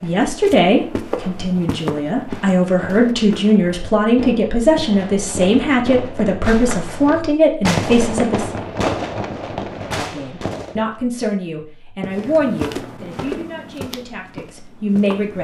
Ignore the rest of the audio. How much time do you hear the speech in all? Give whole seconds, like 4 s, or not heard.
14 s.